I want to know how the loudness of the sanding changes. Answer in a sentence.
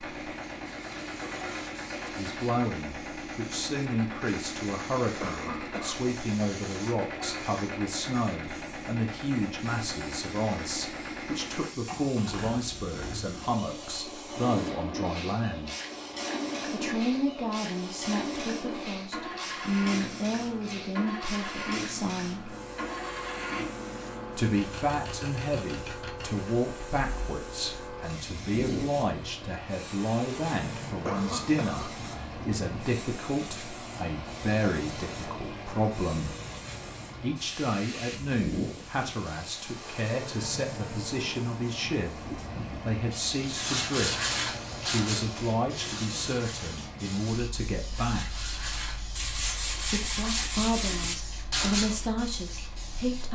The loudness of the sanding goes down, then up.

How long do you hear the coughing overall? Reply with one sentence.
You can hear the coughing for 2 seconds altogether.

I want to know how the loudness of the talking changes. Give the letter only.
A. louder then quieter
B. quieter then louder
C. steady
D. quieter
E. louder
C.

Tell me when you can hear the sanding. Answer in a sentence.
The sanding can be heard from 43.5 to 52.0 s.